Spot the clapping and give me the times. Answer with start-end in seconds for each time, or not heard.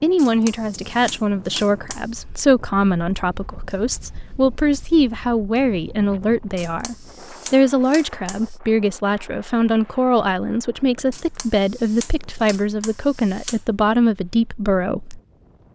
not heard.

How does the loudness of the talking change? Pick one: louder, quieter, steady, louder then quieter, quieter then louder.
steady.